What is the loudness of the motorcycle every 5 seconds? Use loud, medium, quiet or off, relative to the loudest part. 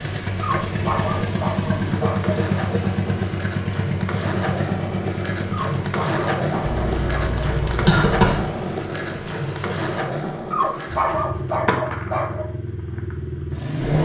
loud, medium, loud.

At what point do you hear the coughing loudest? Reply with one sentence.
The loudest moment of the coughing is at 8 seconds.